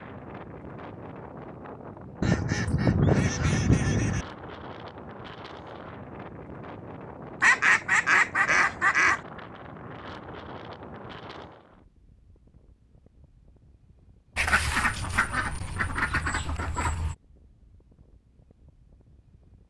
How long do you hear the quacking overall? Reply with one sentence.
The quacking can be heard for 7 seconds in total.